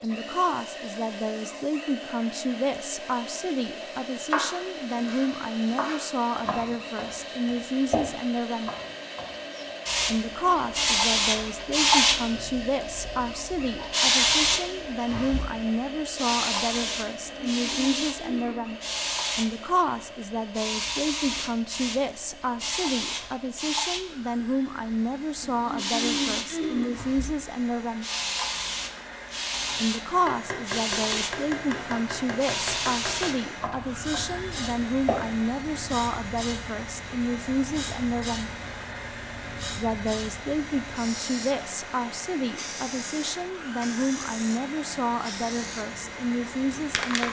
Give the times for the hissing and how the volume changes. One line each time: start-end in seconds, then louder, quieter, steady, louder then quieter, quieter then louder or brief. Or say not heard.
0.0-47.2 louder then quieter.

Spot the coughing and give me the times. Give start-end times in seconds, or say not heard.
17.1-18.6, 25.4-27.0.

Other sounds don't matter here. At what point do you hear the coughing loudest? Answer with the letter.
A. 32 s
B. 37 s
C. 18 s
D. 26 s
D.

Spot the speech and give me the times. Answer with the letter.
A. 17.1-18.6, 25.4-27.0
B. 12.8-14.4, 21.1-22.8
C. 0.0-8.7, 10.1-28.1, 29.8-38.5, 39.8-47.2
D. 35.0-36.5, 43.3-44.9
C.